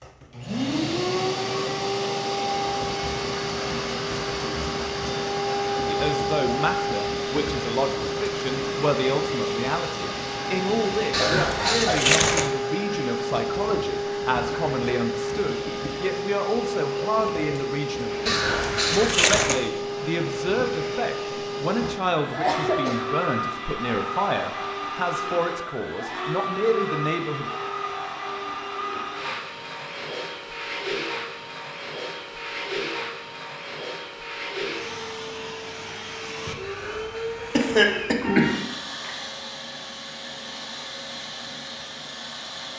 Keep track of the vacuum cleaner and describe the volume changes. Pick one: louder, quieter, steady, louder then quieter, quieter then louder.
quieter.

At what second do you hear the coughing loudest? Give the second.
38 s.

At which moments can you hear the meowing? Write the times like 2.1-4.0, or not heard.
11.1-12.5, 18.2-19.6, 36.6-38.7.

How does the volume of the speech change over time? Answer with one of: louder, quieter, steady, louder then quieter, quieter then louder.
steady.